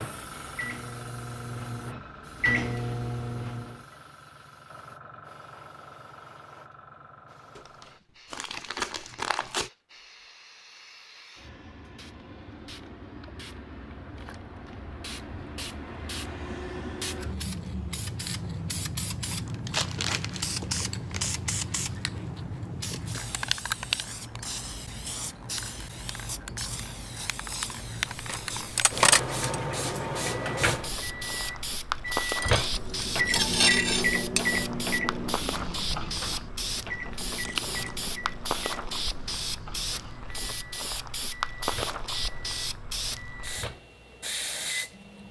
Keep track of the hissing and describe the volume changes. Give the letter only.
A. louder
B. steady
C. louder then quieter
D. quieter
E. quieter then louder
A.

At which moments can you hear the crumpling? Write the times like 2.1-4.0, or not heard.
7.5-9.7, 19.3-21.3, 37.4-38.1.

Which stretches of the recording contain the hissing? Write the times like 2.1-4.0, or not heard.
0.0-45.2.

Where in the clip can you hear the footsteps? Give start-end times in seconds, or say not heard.
not heard.